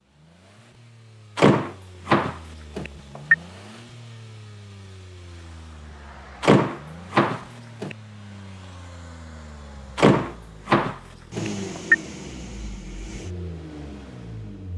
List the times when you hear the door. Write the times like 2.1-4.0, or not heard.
1.4-3.4, 6.4-8.0, 9.9-11.9.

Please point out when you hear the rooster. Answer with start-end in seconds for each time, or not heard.
not heard.